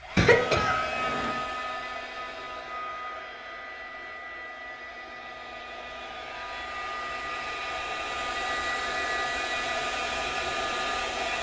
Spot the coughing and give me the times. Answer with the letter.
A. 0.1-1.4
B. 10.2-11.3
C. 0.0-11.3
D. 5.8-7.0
A.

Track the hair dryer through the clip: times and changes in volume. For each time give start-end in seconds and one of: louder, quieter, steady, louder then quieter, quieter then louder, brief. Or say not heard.
0.0-11.3 quieter then louder.